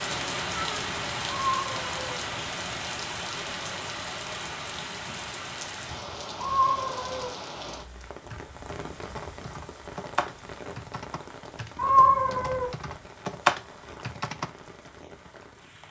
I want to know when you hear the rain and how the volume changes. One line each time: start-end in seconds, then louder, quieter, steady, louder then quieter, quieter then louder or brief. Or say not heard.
0.0-15.8 quieter.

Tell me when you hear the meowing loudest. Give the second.
12 s.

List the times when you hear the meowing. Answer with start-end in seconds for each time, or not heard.
1.4-2.1, 6.4-7.3, 11.8-12.7.